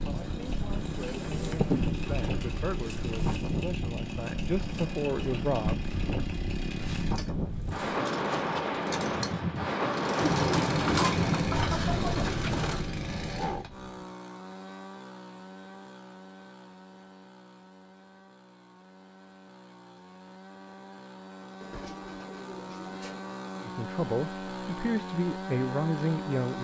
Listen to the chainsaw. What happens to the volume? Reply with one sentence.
The volume of the chainsaw goes down, then up.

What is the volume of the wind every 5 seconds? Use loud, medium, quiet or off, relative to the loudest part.
medium, loud, loud, off, off, off.